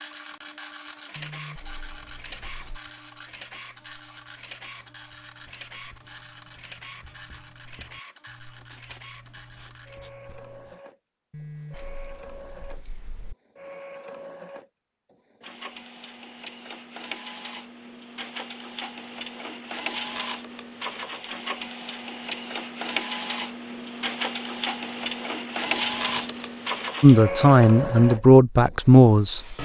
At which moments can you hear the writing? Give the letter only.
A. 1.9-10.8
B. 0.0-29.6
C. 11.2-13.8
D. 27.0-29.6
A.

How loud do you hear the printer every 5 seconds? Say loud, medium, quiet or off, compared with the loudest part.
quiet, quiet, quiet, medium, loud, loud.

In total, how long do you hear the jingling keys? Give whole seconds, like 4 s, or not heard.
5 s.